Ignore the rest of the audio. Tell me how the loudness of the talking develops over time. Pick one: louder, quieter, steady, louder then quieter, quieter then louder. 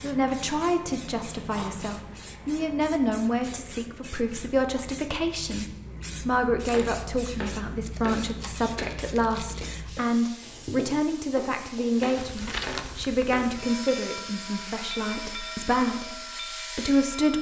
steady.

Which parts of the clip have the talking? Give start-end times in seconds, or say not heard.
0.0-17.3.